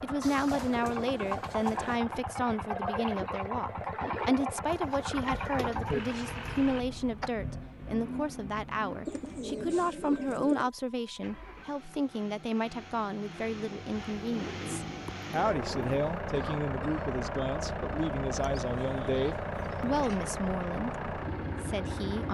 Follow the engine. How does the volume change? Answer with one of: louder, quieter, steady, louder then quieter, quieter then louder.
quieter then louder.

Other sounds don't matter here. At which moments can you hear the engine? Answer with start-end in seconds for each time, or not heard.
0.0-22.2.